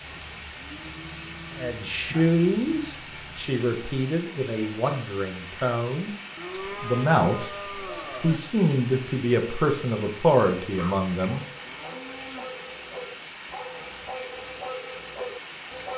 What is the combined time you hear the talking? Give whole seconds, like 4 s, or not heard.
9 s.